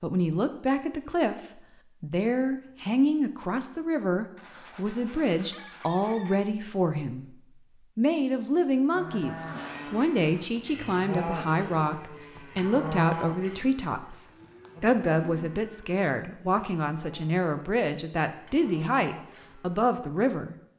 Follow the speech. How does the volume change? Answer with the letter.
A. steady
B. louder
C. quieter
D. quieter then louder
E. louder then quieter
A.